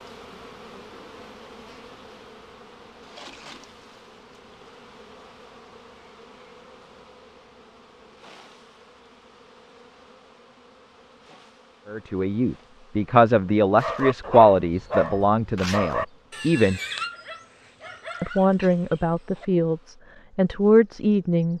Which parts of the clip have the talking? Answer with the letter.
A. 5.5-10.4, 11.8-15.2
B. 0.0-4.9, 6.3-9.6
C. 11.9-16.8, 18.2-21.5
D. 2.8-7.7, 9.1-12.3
C.